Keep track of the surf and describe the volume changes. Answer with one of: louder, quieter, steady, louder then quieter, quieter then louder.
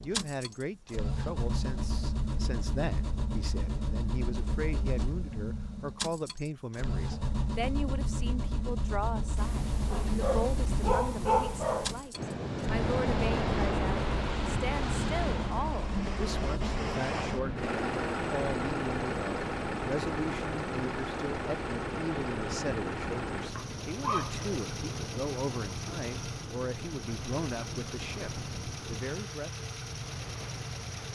quieter.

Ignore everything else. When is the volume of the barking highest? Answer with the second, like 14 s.
11 s.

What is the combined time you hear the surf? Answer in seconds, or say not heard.
19 s.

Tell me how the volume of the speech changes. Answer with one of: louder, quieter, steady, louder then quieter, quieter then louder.
steady.